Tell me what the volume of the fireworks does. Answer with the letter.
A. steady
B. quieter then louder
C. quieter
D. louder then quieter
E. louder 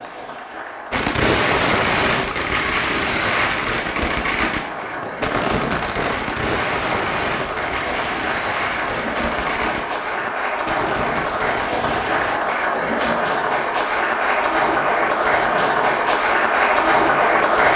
C.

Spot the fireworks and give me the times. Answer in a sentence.
The fireworks can be heard from 0.9 to 12.4 s.